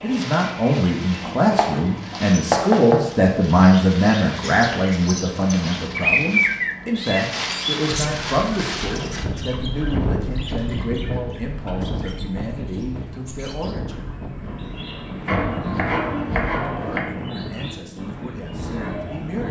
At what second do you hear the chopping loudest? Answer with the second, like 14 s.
3 s.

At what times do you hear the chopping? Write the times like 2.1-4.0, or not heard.
1.4-3.0, 15.2-17.1.